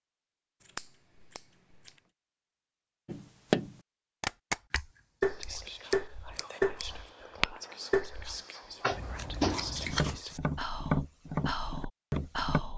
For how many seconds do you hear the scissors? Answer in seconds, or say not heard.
5 s.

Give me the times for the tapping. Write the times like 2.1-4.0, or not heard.
3.0-12.6.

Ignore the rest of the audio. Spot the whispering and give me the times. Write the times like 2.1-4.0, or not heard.
5.2-12.7.